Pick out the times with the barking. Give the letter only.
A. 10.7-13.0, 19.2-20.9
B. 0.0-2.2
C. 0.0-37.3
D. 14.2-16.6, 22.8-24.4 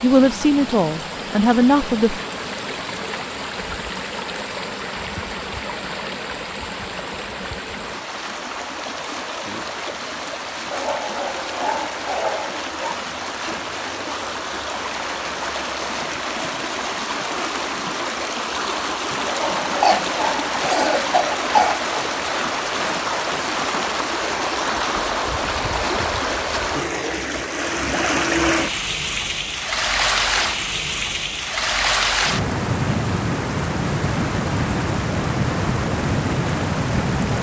A.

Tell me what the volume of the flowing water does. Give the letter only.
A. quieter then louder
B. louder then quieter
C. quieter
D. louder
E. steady
D.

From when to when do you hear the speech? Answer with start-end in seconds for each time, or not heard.
0.0-2.2.